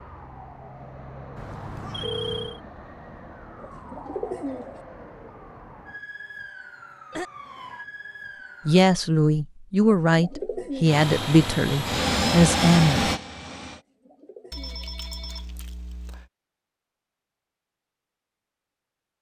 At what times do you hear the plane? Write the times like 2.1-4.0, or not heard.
10.8-13.8.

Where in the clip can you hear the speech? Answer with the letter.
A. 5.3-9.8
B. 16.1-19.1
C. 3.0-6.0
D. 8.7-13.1
D.